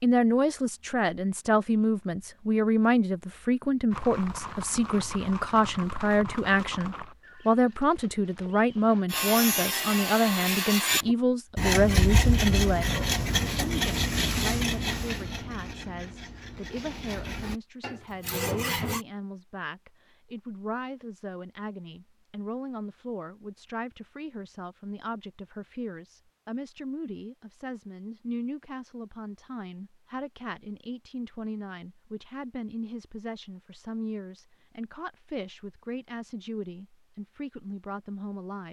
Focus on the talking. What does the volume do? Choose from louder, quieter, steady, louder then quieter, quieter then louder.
quieter.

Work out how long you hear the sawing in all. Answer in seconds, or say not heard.
10 s.